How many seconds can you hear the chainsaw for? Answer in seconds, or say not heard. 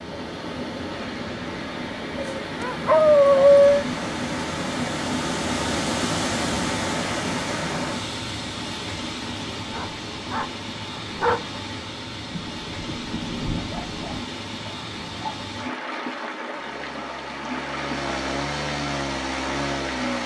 4 s.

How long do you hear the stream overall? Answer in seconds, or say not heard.
20 s.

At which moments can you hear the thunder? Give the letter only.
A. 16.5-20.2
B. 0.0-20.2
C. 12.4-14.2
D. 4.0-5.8
C.